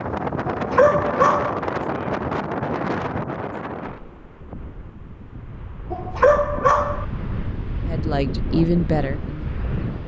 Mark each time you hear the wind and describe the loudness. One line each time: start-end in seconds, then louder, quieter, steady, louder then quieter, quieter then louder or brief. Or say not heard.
0.0-10.0 quieter then louder.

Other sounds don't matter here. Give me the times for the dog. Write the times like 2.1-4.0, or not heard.
0.5-1.6, 5.9-7.0.